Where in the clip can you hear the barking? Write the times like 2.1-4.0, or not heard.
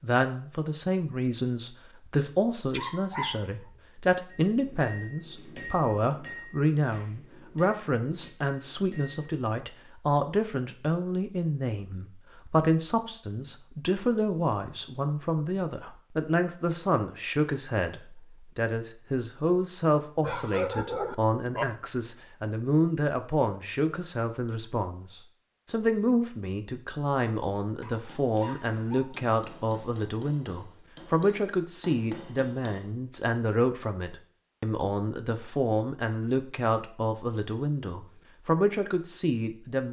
2.6-3.6, 20.2-21.6, 27.6-29.2.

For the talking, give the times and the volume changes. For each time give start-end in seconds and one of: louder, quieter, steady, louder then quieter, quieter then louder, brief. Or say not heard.
0.0-39.8 steady.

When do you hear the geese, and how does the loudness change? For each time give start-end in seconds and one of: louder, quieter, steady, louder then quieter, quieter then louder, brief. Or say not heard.
not heard.